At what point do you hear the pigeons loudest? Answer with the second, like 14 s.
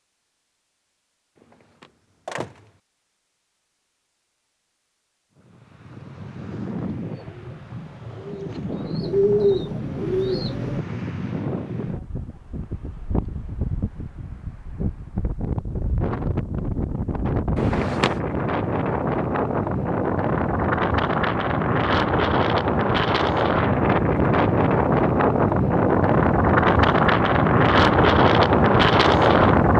9 s.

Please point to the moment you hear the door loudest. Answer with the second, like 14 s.
18 s.